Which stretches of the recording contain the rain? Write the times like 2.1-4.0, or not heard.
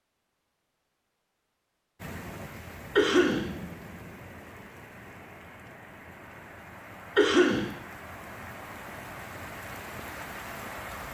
1.9-11.0.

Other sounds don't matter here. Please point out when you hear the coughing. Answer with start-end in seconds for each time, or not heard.
3.0-3.5, 7.2-7.7.